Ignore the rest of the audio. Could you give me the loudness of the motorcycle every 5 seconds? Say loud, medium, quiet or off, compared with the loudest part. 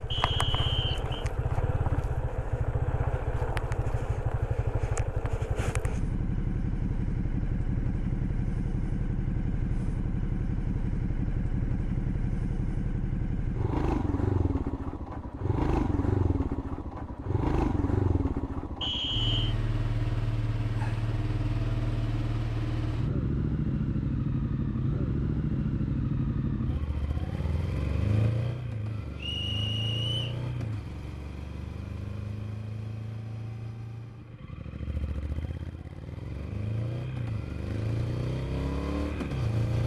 loud, loud, loud, loud, loud, loud, medium, loud.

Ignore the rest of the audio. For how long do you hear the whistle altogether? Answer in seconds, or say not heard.
3 s.